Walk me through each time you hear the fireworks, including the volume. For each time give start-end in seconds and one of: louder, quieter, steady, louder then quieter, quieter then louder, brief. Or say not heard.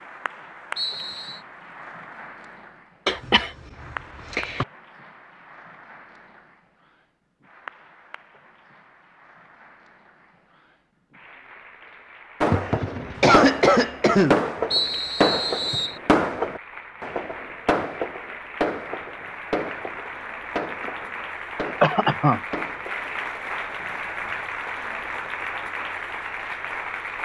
12.4-22.9 quieter.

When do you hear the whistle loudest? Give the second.
15 s.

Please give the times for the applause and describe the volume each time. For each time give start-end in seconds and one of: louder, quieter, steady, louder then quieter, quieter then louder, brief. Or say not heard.
0.0-27.2 quieter then louder.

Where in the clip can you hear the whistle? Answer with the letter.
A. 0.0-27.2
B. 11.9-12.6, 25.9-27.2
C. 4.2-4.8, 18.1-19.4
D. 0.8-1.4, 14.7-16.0
D.